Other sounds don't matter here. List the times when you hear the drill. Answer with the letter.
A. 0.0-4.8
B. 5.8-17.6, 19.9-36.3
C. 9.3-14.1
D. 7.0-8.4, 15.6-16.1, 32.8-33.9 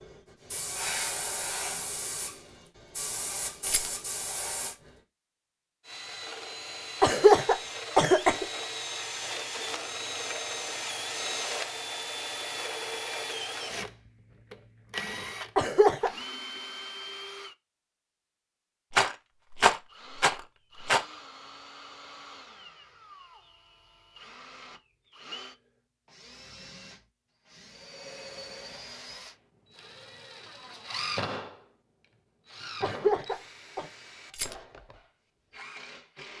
B.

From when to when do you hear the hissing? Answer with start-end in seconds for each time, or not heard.
0.0-4.8.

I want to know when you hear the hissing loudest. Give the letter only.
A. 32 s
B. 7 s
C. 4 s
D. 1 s
D.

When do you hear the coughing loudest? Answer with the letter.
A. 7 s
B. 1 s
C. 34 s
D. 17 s
A.